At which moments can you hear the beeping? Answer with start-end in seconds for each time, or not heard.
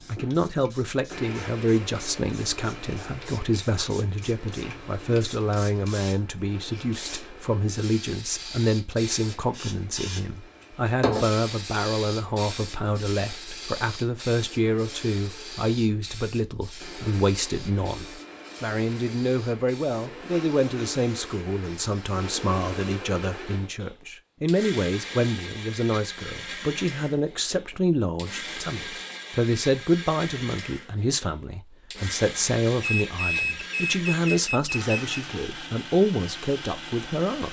32.8-35.1.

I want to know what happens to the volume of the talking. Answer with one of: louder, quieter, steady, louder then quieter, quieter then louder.
steady.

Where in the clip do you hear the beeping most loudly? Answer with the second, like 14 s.
33 s.